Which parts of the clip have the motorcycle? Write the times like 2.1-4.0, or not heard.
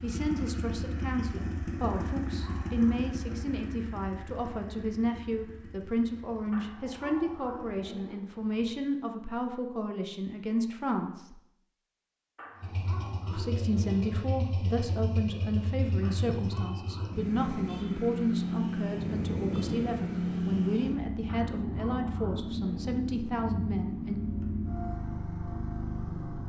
0.0-8.8, 12.6-26.4.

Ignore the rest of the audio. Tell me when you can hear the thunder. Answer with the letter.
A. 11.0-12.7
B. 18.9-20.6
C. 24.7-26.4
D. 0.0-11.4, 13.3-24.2
B.